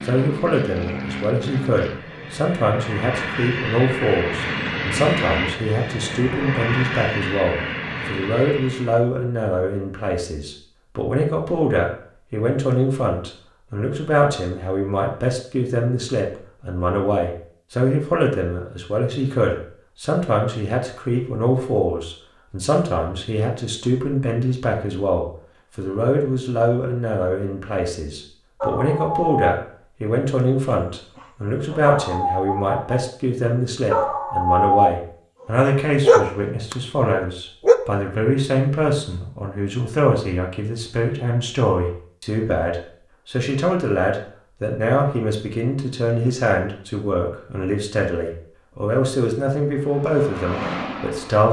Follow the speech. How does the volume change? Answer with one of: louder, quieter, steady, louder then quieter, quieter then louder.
steady.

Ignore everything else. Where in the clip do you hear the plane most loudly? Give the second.
5 s.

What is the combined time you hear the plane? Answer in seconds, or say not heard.
11 s.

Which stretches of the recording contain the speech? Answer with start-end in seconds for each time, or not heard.
0.1-51.4.